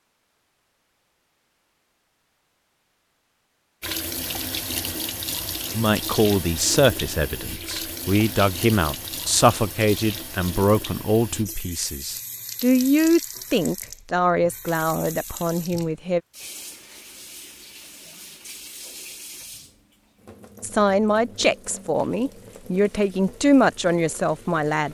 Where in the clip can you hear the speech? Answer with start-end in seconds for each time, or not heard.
5.7-16.2, 20.6-24.8.